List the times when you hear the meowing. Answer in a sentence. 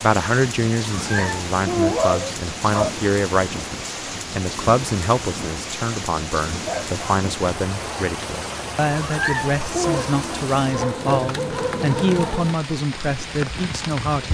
You can hear the meowing from 0.8 to 2.1 s and from 9.0 to 10.0 s.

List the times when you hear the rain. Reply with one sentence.
You can hear the rain from 0.0 to 14.2 s.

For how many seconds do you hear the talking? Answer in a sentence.
The talking can be heard for 14 seconds in total.